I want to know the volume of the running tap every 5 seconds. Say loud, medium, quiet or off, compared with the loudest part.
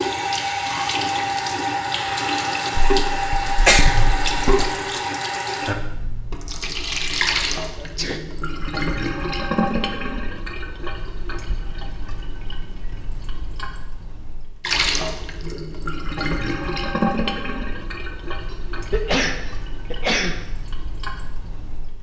loud, loud, medium, medium, quiet.